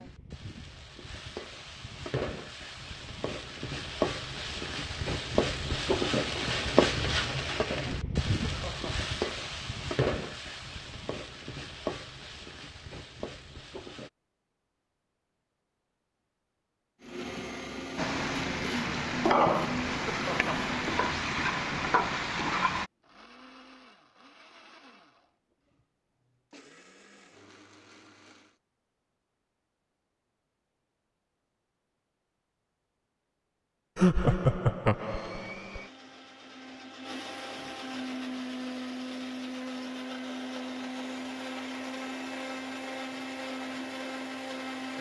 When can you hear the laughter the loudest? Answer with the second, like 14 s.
34 s.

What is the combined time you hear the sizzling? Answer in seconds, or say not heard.
19 s.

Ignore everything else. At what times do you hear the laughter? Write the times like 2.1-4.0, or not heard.
8.3-9.1, 19.9-20.7, 34.0-35.8.